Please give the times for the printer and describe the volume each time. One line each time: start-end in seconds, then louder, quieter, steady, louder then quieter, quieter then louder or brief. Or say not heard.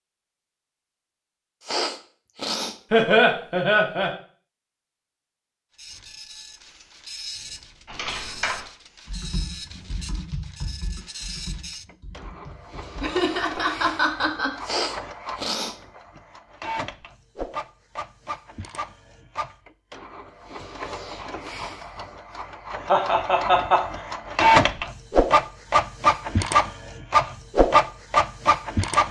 5.8-29.0 louder.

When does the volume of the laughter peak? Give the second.
3 s.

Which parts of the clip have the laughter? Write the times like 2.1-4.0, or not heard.
2.9-4.1, 13.0-14.5, 22.9-23.8.